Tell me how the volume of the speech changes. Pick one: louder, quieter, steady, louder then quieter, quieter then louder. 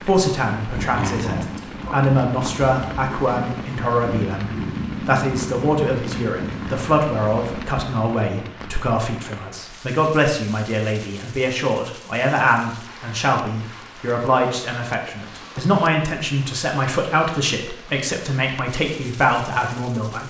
steady.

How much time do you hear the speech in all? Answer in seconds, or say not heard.
20 s.